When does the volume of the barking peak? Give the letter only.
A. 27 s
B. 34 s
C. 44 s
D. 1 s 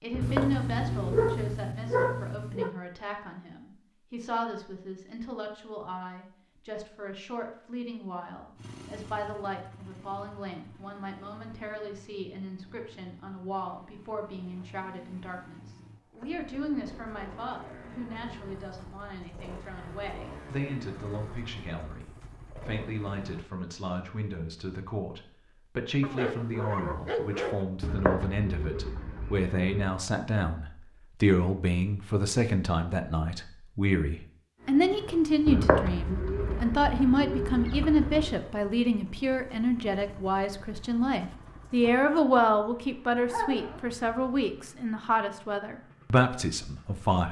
D.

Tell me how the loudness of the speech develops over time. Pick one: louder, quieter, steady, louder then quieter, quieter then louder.
louder.